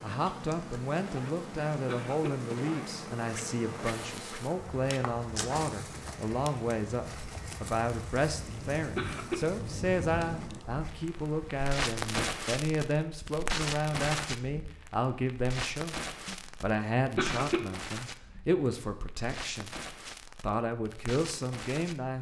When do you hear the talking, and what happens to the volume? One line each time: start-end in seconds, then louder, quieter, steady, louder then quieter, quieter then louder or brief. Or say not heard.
0.0-22.1 steady.